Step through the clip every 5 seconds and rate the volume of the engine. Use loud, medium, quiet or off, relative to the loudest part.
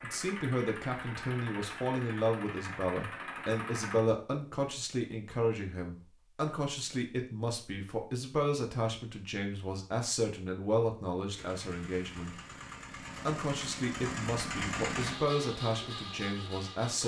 loud, off, loud, loud.